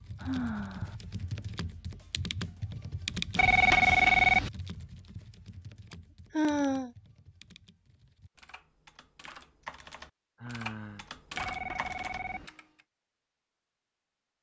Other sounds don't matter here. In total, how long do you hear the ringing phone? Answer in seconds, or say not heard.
2 s.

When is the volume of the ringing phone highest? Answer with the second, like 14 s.
4 s.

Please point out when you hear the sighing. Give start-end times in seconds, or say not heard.
0.2-0.9, 5.9-6.9, 10.4-11.1.